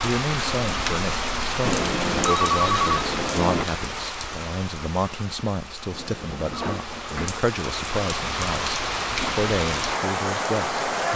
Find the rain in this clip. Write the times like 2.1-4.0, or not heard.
0.0-11.1.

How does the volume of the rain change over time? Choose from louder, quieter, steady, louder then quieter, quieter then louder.
quieter then louder.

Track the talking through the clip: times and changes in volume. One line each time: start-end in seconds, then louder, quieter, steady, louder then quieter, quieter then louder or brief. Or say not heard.
0.0-11.1 steady.